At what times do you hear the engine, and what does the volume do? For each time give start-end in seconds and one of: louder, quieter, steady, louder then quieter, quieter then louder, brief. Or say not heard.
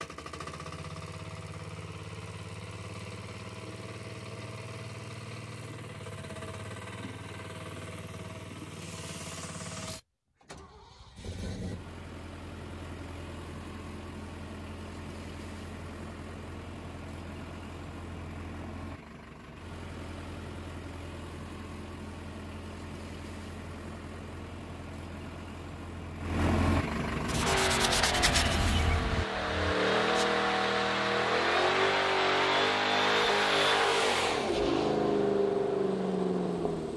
0.0-36.9 louder.